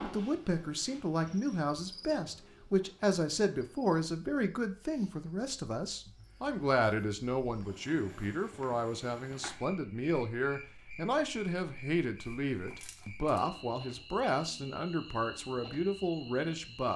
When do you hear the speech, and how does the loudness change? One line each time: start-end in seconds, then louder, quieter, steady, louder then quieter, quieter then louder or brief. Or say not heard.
0.0-16.9 steady.